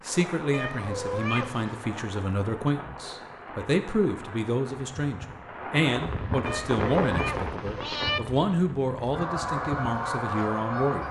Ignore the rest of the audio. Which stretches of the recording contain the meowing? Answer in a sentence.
The meowing can be heard from 0.5 to 1.9 s and from 6.5 to 8.2 s.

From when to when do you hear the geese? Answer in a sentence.
The geese can be heard from 9.1 to 11.0 s.